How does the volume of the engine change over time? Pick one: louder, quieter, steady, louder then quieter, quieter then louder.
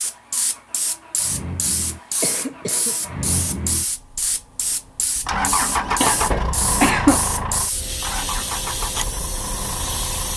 louder then quieter.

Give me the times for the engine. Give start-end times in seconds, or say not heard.
0.0-10.3.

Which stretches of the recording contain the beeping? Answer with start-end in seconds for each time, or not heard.
not heard.